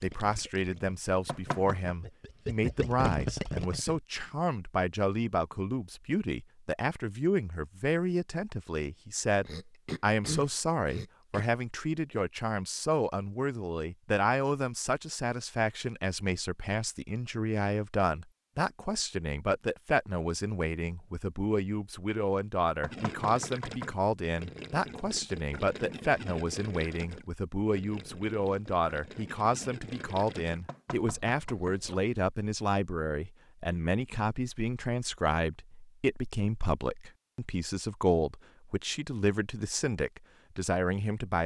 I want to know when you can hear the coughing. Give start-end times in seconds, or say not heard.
9.4-11.4.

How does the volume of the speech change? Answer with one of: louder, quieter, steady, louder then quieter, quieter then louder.
steady.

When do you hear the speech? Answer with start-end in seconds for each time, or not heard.
0.0-41.4.